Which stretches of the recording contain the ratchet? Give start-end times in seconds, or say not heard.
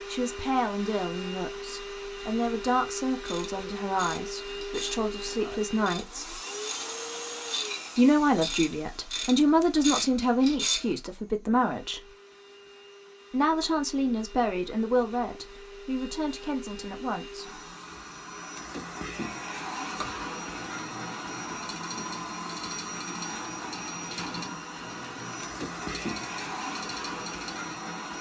3.2-10.8, 19.9-27.8.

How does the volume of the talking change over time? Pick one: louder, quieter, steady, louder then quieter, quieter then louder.
louder then quieter.